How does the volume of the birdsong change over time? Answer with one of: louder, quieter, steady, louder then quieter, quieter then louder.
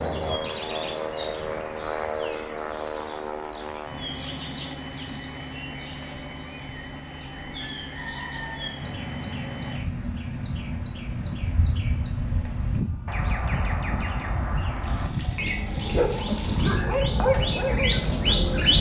louder.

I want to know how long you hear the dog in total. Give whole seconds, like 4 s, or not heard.
3 s.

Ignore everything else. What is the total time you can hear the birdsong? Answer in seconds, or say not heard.
19 s.